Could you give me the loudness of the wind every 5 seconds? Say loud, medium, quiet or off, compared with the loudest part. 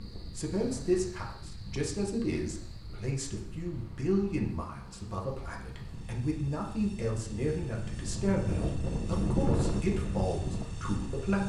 quiet, loud, loud.